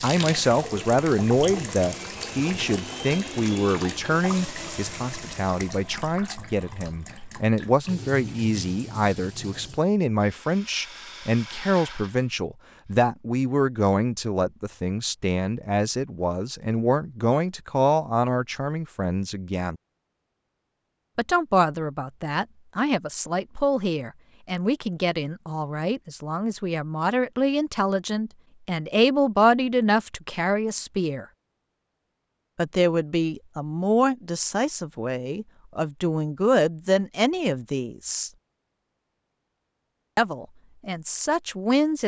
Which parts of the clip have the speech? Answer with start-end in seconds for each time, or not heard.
0.0-19.8, 21.1-31.2, 32.5-38.3, 40.1-42.0.